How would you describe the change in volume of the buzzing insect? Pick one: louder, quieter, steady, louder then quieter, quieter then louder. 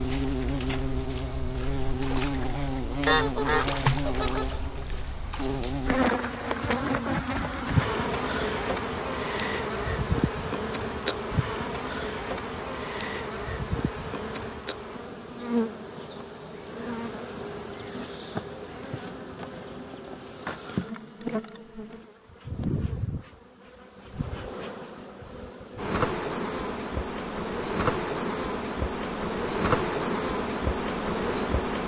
quieter then louder.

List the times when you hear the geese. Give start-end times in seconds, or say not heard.
3.0-4.6.